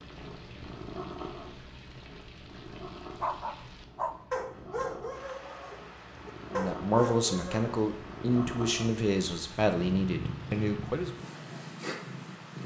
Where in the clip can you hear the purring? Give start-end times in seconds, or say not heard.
0.0-12.6.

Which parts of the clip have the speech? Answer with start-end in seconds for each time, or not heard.
6.5-11.1.